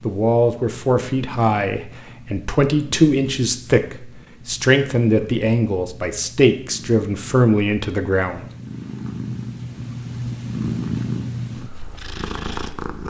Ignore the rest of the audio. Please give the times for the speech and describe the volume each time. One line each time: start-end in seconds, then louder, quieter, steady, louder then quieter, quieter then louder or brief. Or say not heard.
0.0-8.4 steady.